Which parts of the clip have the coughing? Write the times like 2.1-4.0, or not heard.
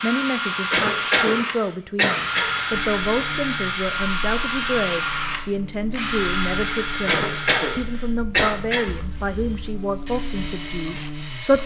0.7-2.5, 7.0-8.9.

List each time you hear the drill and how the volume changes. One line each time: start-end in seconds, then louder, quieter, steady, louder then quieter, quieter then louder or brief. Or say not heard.
0.0-11.6 quieter.